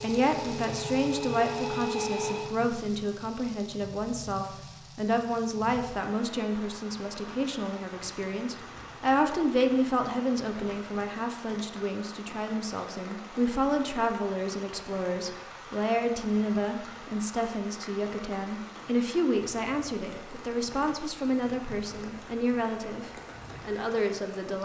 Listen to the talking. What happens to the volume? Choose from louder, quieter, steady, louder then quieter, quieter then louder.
steady.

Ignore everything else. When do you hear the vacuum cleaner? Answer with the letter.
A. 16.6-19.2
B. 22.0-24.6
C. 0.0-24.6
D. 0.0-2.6
D.